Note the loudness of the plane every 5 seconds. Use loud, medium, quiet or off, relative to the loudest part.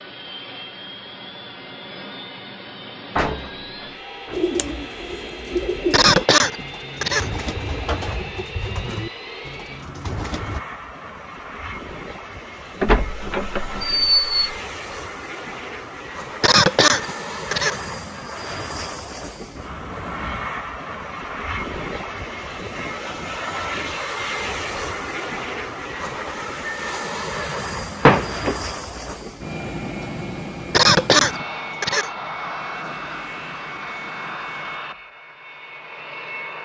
medium, medium, medium, loud, loud, loud, loud, medium.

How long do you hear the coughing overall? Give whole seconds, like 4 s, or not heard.
4 s.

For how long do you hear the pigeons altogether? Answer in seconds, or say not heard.
6 s.